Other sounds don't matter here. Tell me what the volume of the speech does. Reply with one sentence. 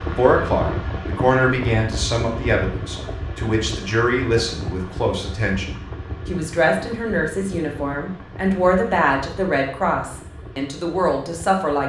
The volume of the speech stays about the same.